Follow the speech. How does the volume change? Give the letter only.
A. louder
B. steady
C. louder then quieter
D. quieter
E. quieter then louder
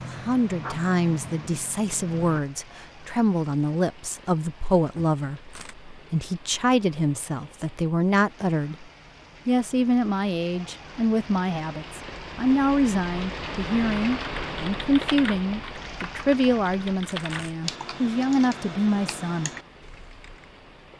B.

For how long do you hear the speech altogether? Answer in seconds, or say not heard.
19 s.